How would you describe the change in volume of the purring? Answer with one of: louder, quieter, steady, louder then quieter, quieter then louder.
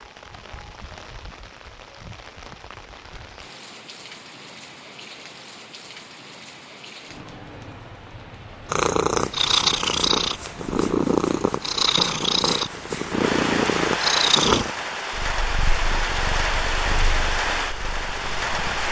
quieter.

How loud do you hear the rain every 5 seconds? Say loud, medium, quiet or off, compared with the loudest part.
quiet, quiet, loud, loud.